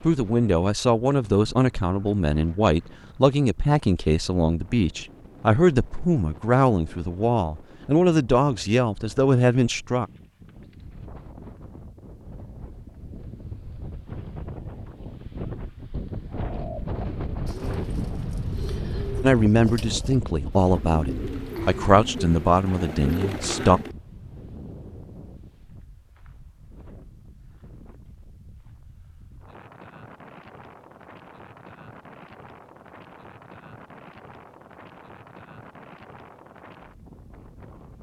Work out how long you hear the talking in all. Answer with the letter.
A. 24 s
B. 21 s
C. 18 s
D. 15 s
D.